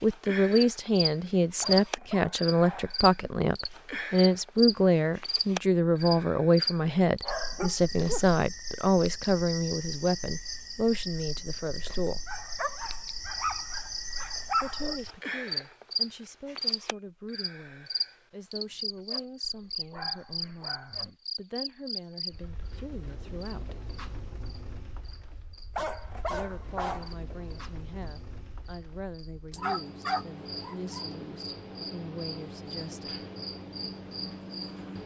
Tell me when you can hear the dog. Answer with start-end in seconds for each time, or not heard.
1.6-3.0, 7.2-8.2, 12.2-15.0, 19.4-21.1, 25.8-27.6, 29.5-31.5.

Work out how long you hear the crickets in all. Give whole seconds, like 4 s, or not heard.
35 s.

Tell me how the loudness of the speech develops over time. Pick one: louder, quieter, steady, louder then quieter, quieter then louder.
quieter.